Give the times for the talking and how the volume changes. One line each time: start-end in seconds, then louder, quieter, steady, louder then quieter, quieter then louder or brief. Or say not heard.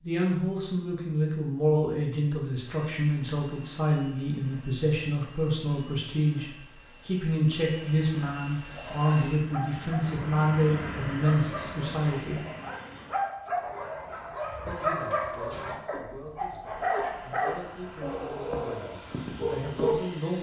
0.0-12.4 steady
14.7-20.3 louder.